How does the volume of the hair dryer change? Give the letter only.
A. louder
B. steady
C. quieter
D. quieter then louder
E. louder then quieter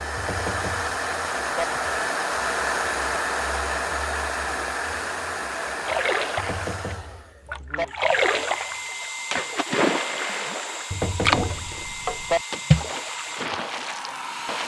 C.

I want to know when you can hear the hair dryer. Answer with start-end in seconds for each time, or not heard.
0.0-14.6.